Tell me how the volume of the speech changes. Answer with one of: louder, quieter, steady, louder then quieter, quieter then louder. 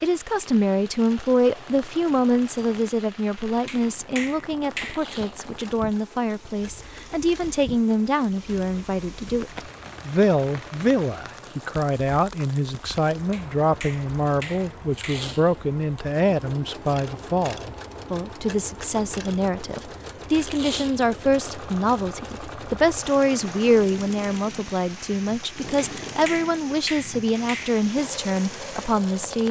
steady.